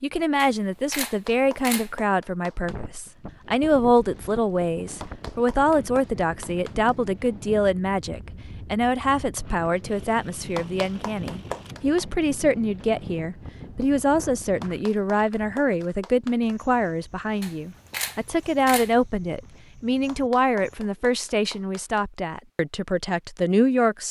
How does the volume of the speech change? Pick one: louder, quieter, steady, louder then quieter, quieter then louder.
steady.